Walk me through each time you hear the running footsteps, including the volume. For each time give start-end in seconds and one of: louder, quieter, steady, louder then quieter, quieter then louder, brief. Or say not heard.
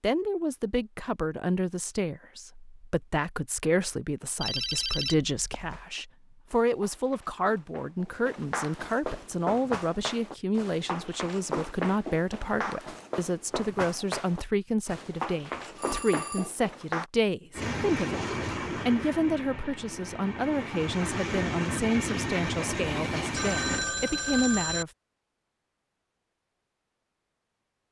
5.7-17.1 louder.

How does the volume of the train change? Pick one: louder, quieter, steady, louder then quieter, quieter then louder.
quieter then louder.